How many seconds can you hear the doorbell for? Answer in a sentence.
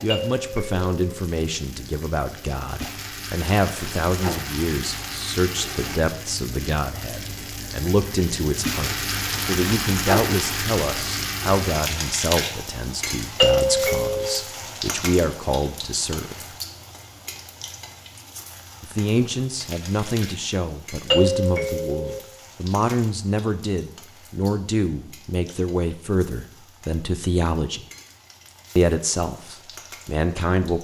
The doorbell can be heard for 3 seconds in total.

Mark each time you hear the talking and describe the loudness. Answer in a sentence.
You can hear the talking from 0.0 to 16.4 s, at a steady volume; from 18.8 to 27.9 s, at a steady volume; and briefly from 28.8 to 30.7 s.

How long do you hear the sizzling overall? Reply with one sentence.
The sizzling can be heard for 31 seconds in total.